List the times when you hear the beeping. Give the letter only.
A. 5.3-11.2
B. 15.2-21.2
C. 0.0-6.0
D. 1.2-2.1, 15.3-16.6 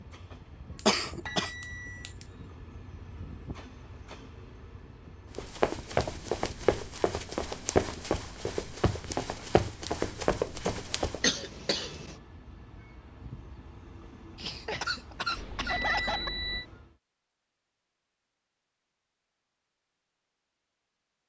D.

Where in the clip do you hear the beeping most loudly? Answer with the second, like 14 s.
16 s.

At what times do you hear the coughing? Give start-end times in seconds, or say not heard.
0.8-2.1, 11.2-12.2, 14.3-16.3.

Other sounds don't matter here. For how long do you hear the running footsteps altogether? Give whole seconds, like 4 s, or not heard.
6 s.